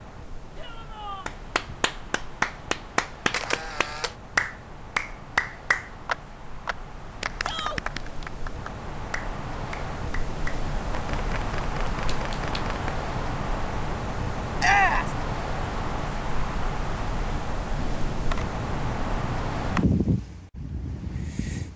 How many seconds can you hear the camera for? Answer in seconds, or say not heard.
5 s.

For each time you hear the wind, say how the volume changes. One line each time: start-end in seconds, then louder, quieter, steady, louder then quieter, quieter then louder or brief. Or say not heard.
0.0-21.7 louder.